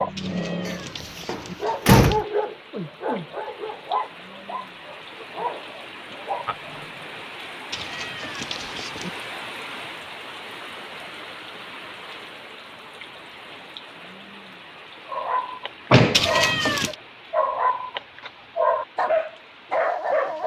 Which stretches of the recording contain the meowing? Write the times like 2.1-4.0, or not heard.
0.1-2.2, 7.7-9.2, 16.1-16.9.